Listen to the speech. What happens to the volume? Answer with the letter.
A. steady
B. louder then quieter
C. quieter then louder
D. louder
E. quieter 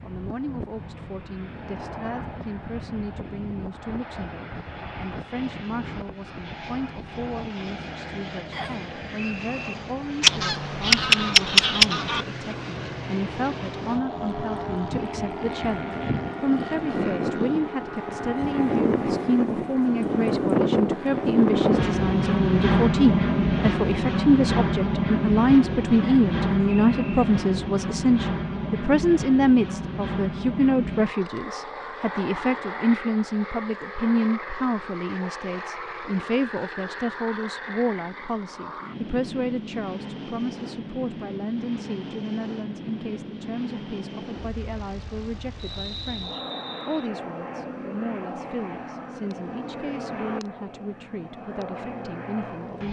B.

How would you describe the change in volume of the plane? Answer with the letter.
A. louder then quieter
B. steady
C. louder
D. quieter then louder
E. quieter
A.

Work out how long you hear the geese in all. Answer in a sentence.
You can hear the geese for 2 seconds altogether.